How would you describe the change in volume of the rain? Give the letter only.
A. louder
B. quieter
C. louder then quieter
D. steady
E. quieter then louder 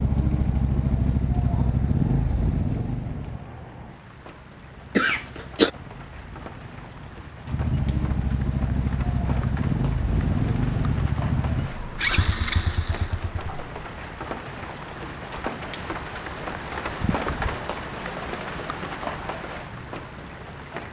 A.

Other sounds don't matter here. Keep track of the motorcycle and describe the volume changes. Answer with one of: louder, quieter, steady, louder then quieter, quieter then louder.
quieter then louder.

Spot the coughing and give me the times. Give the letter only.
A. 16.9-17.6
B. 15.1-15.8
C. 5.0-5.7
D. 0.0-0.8
C.